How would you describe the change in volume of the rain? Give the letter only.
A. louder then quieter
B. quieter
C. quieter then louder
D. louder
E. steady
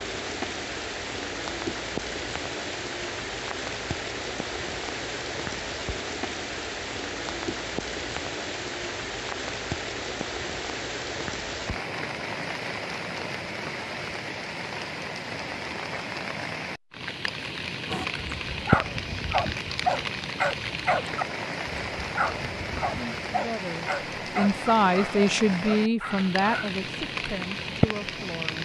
E.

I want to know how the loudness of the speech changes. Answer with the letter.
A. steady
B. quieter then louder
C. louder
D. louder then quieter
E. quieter
D.